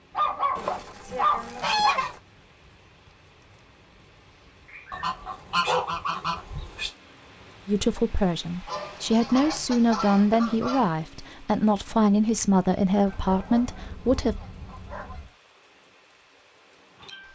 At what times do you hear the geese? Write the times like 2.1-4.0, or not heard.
0.6-2.2, 4.9-6.9, 8.7-10.9, 13.1-15.3.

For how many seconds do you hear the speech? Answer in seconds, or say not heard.
7 s.